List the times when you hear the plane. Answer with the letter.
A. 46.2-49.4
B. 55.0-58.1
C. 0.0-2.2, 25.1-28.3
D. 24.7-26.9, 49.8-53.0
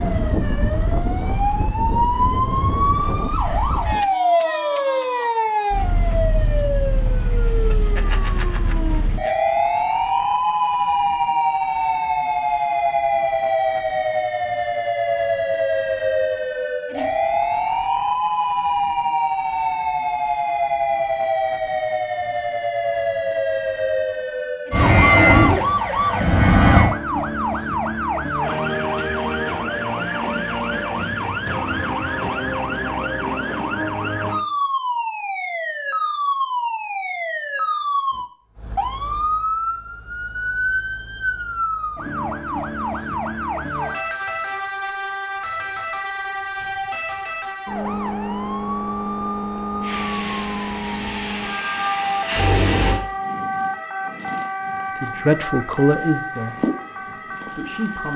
D.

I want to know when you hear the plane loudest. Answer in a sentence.
The loudest moment of the plane is at 25 seconds.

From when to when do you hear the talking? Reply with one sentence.
The talking can be heard from 55.0 to 58.1 s.